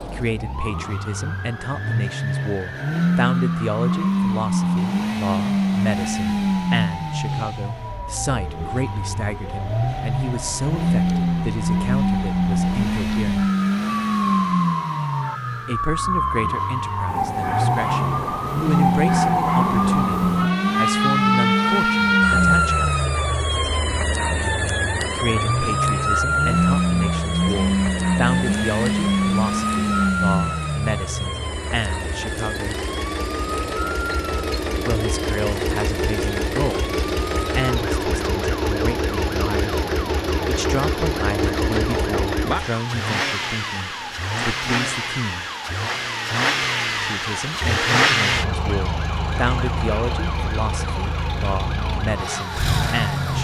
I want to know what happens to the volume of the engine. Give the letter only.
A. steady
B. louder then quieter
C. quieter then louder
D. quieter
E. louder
A.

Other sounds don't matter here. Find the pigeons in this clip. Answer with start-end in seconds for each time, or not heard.
not heard.